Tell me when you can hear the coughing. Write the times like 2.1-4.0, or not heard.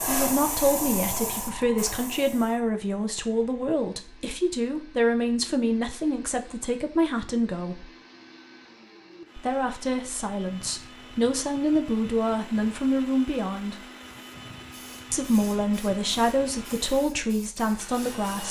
not heard.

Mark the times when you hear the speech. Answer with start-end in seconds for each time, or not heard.
0.1-7.9, 9.3-13.8, 15.1-18.4.